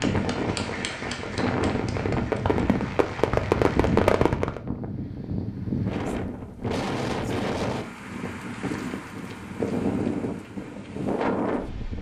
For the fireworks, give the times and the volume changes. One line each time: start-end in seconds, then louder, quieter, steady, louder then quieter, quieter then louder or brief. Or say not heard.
0.0-4.6 louder.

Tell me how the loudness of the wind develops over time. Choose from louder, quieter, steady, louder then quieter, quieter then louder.
steady.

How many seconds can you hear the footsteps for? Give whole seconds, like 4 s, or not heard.
not heard.